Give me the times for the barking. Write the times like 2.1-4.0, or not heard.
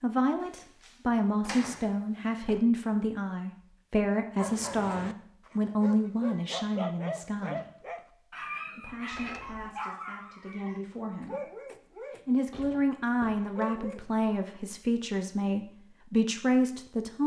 4.3-14.2.